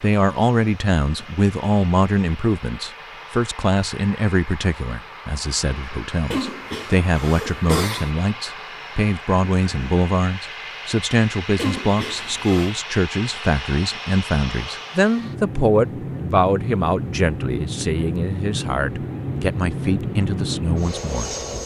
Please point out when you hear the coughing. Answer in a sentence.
You can hear the coughing from 6.3 to 8.2 s and from 11.6 to 12.8 s.